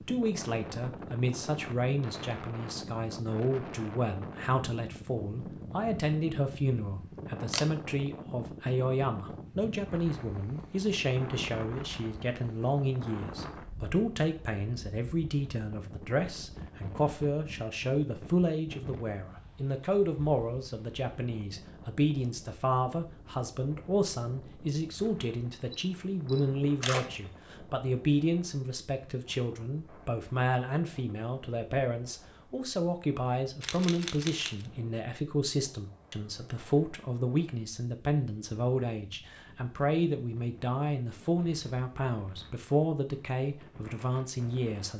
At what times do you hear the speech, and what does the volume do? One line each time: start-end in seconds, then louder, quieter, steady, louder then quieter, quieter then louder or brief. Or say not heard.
0.1-44.9 steady.